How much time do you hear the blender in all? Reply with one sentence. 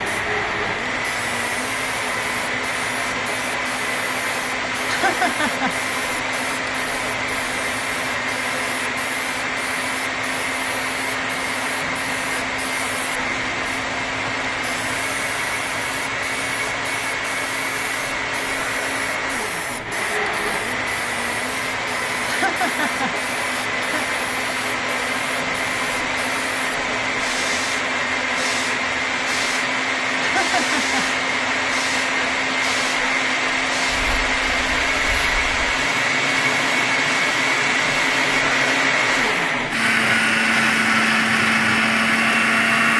The blender can be heard for 43 seconds in total.